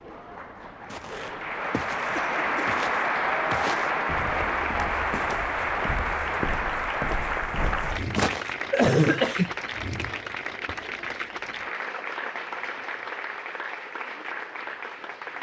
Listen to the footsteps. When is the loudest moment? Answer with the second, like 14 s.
8 s.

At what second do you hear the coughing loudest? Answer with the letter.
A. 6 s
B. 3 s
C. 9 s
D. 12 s
C.